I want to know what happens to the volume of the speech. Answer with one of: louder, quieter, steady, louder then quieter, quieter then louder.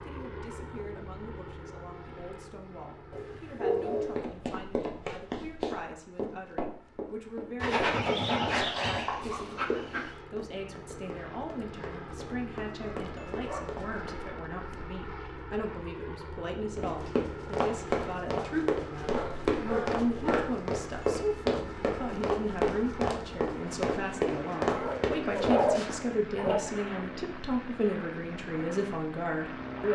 louder.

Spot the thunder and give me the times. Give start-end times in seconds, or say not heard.
not heard.